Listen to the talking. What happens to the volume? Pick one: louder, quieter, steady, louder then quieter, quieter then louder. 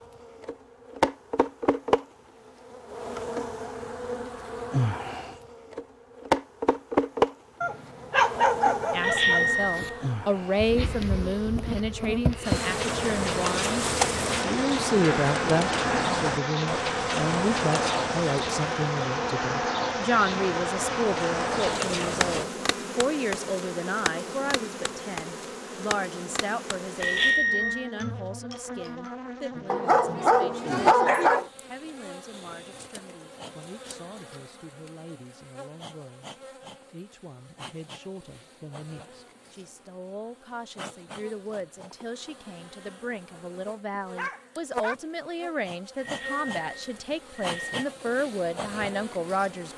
quieter then louder.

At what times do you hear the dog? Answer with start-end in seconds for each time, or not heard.
7.6-9.9, 29.7-31.4, 44.1-45.0.